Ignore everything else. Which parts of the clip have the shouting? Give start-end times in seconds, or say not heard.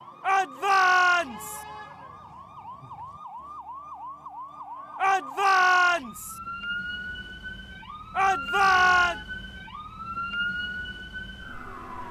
0.2-1.6, 5.0-6.3, 8.2-9.2.